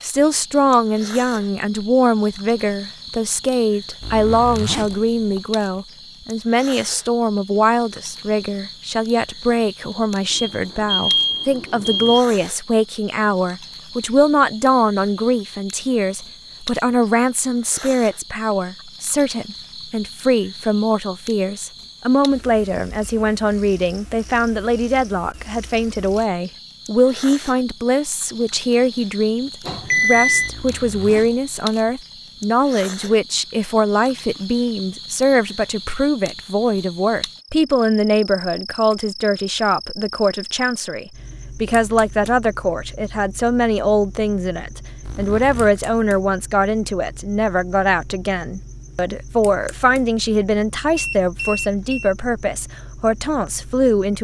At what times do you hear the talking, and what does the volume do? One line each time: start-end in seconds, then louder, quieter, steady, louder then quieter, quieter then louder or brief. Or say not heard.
0.0-54.1 steady.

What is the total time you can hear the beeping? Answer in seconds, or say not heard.
4 s.